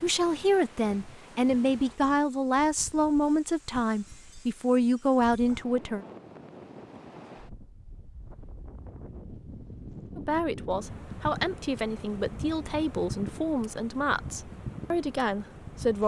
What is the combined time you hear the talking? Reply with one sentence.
The talking can be heard for 12 seconds in total.